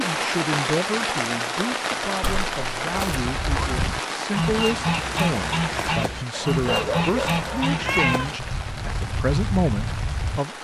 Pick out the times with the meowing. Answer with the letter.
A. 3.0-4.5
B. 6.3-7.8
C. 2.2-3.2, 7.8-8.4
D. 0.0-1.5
C.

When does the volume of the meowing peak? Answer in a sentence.
The volume of the meowing peaks at 8 seconds.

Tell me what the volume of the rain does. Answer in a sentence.
The loudness of the rain goes down.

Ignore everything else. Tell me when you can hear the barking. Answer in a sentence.
The barking can be heard from 6.3 to 7.8 s.